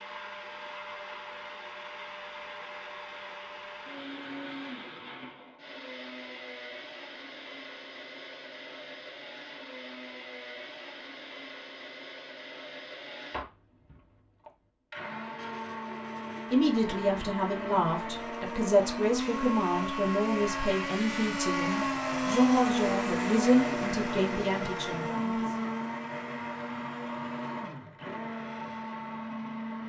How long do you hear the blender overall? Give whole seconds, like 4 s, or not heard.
30 s.